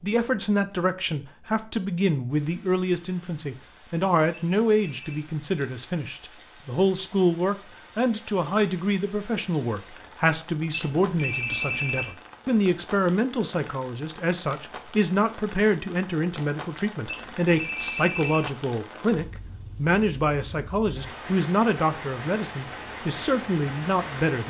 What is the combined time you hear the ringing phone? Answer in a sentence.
The ringing phone can be heard for 4 seconds in total.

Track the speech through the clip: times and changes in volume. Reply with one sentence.
The speech can be heard from 0.0 to 24.4 s, at a steady volume.